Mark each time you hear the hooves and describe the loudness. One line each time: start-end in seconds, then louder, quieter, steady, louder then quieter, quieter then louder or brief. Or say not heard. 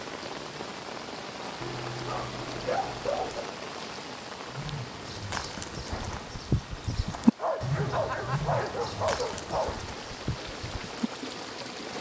4.5-11.1 louder then quieter.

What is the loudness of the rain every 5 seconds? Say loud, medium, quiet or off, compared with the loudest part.
loud, medium, loud.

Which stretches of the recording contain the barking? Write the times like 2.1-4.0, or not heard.
1.6-3.5, 7.3-9.8.